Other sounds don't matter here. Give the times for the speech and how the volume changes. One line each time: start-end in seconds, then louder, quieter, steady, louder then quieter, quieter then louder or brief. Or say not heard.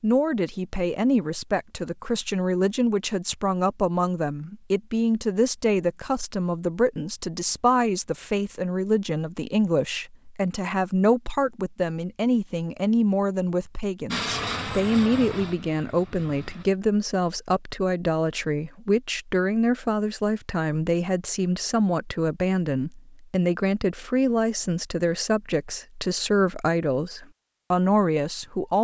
0.0-28.8 steady.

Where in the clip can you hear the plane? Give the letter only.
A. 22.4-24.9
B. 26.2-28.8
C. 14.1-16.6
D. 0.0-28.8
C.